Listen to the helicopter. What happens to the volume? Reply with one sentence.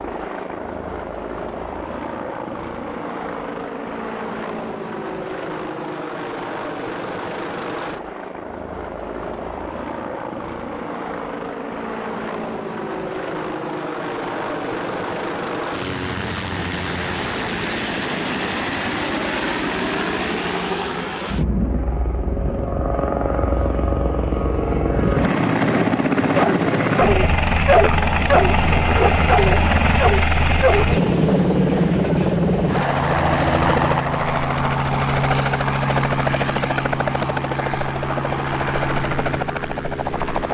The loudness of the helicopter goes up.